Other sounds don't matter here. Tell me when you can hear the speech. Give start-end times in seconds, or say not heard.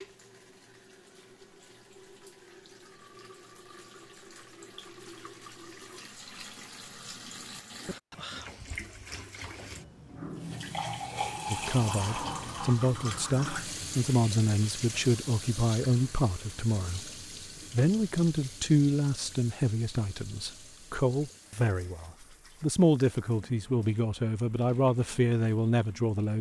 11.5-17.1, 17.7-26.3.